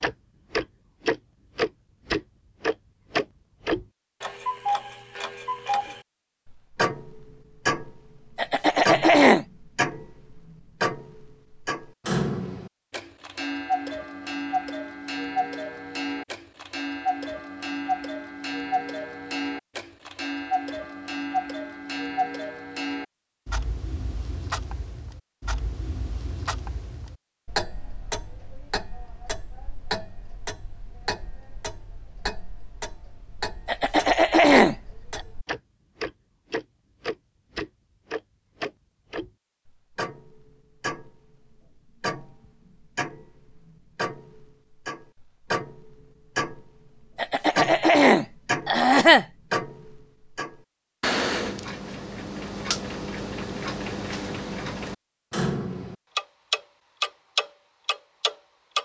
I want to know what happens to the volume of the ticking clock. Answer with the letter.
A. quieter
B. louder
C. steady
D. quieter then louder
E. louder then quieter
D.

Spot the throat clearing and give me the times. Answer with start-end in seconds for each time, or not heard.
8.3-9.4, 33.6-35.2, 47.1-49.2.